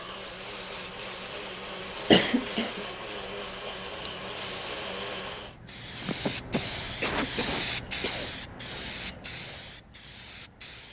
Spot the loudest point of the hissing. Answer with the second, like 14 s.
8 s.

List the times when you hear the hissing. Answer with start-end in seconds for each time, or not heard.
0.0-10.8.